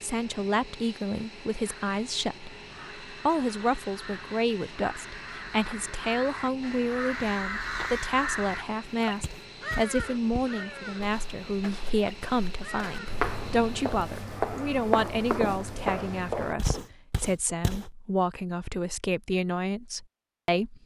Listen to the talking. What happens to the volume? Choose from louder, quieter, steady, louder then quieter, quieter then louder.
steady.